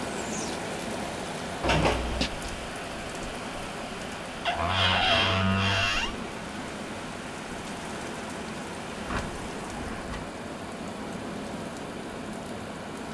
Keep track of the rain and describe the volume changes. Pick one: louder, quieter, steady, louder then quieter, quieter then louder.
steady.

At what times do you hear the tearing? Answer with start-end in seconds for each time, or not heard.
not heard.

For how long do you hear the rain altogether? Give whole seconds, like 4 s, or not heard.
13 s.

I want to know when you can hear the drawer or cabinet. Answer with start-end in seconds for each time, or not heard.
1.6-2.3, 4.5-6.2, 8.9-10.3.